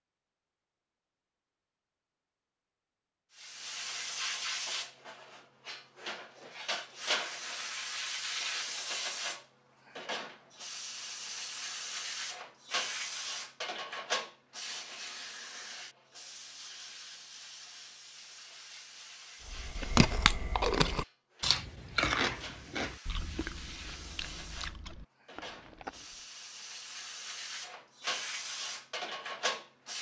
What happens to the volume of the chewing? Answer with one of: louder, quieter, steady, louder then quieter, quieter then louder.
quieter.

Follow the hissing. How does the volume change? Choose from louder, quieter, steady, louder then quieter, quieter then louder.
quieter then louder.